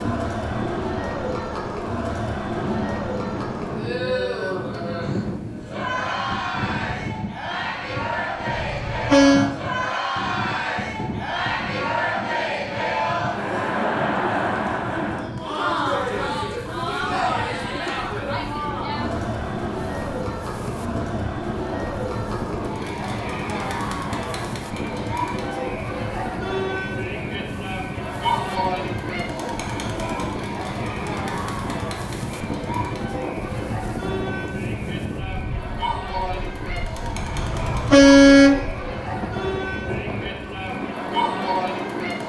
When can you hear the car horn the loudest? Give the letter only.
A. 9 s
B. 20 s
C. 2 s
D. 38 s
D.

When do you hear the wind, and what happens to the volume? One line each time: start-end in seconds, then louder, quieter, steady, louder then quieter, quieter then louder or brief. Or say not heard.
0.0-42.2 steady.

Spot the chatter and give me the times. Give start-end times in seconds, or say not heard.
0.0-42.2.